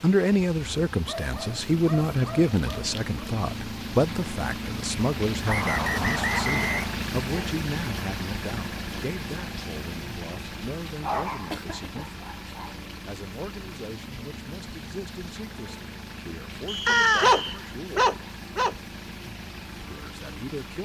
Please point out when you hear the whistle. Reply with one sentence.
You can hear the whistle from 5.5 to 7.0 s and from 16.6 to 17.6 s.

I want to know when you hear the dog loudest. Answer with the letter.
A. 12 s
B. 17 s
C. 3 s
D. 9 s
B.